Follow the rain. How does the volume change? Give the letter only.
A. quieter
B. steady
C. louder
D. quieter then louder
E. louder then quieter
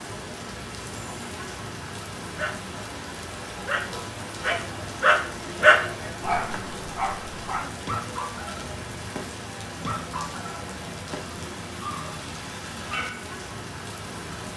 B.